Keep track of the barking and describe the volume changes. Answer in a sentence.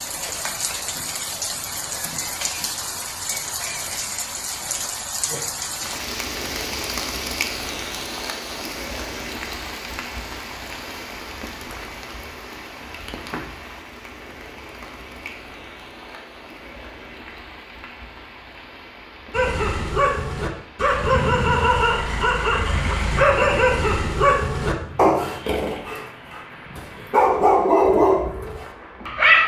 The loudness of the barking goes down, then up.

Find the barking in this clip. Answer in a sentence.
The barking can be heard from 19.3 to 29.4 s.